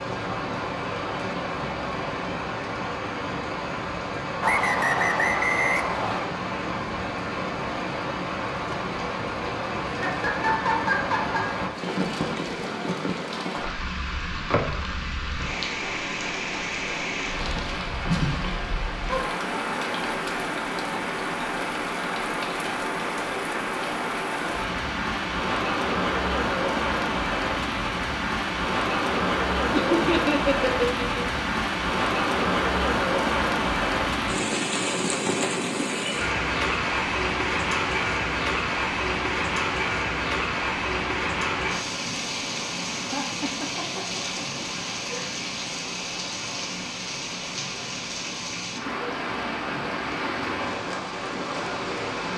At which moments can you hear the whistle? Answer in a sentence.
The whistle can be heard from 4.4 to 6.3 s.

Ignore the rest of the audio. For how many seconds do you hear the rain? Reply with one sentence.
The rain can be heard for 52 seconds in total.